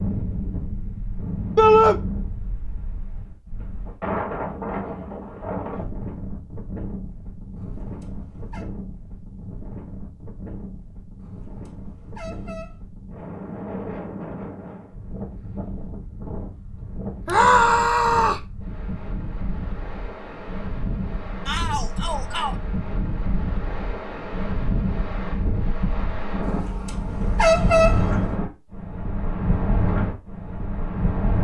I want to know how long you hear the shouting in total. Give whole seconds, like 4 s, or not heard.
3 s.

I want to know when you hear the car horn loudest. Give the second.
28 s.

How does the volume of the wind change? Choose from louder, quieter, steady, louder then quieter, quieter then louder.
quieter then louder.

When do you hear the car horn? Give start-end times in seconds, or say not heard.
7.5-8.7, 11.2-12.8, 26.4-28.4.